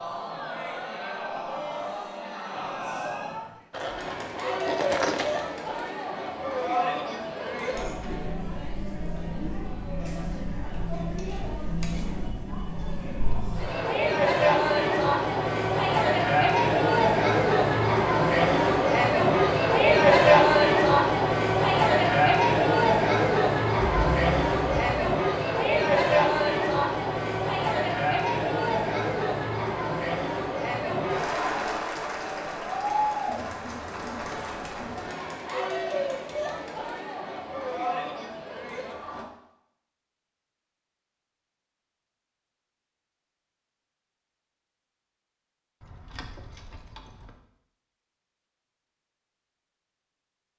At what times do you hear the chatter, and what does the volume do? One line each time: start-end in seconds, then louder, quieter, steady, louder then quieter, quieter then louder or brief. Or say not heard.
0.0-39.2 louder then quieter.